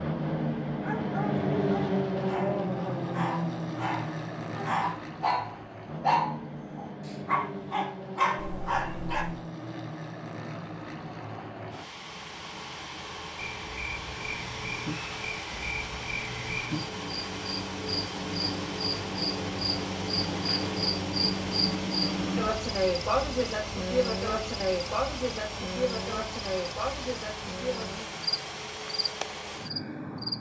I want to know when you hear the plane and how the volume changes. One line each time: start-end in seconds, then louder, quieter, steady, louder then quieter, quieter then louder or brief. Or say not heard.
0.0-30.3 quieter.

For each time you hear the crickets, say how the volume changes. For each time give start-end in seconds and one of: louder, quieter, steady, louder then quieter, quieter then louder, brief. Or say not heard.
13.3-30.3 louder then quieter.